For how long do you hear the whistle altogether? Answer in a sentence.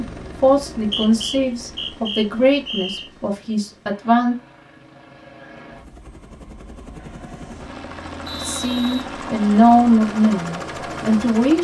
The whistle can be heard for 3 seconds in total.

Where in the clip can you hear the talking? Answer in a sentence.
The talking can be heard from 0.0 to 4.3 s and from 8.4 to 11.6 s.